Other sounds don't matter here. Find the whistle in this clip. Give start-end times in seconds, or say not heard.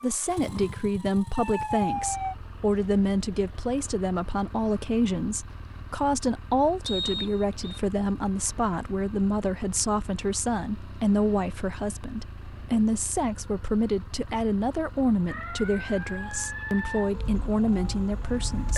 6.8-7.8.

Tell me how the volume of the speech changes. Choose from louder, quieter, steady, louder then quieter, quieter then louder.
steady.